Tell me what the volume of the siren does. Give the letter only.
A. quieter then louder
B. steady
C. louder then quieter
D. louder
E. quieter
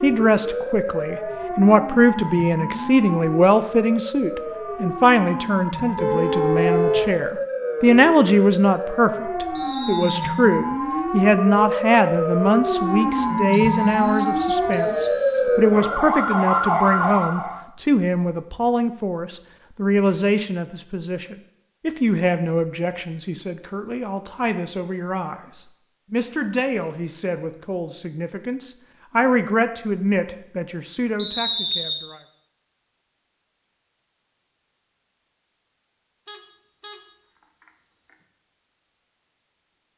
D.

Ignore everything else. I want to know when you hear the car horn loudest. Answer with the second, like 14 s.
7 s.